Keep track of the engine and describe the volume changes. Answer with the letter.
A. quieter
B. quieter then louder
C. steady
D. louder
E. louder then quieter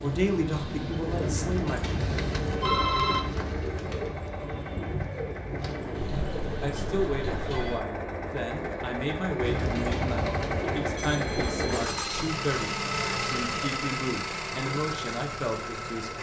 D.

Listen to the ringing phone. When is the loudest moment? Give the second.
3 s.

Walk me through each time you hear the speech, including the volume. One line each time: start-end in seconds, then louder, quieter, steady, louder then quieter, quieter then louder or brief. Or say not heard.
0.0-1.8 brief
6.6-16.1 steady.